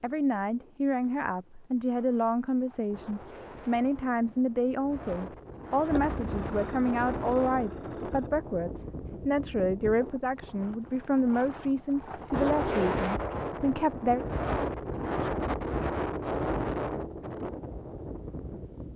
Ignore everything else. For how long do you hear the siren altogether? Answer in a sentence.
The siren can't be heard in this clip.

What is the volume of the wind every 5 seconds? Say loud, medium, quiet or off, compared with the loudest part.
quiet, medium, loud, loud.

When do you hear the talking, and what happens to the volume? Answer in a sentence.
You can hear the talking from 0.0 to 14.2 s, at a steady volume.